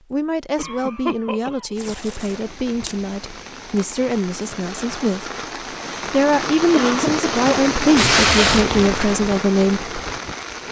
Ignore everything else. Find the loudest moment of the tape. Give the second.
8 s.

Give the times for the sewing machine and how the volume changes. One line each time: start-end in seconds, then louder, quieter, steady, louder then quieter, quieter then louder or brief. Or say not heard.
not heard.